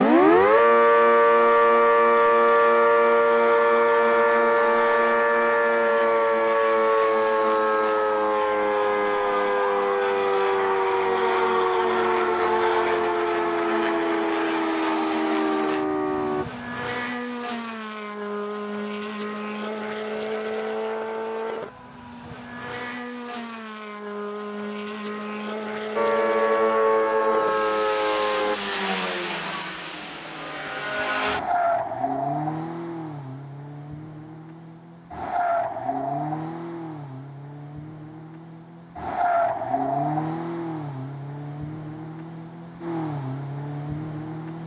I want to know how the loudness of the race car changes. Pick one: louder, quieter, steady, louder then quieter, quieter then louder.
steady.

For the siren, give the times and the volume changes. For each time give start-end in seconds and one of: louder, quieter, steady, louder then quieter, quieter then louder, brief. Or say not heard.
0.0-16.4 quieter
25.9-28.6 brief.